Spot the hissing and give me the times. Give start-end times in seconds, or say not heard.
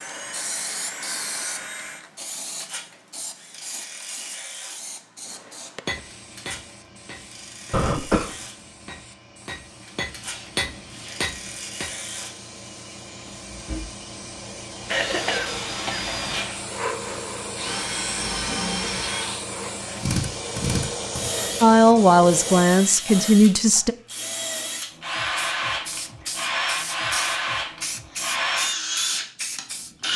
0.0-22.6, 25.4-29.9.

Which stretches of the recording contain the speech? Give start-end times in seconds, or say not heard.
21.6-23.9.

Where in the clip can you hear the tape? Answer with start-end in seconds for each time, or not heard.
not heard.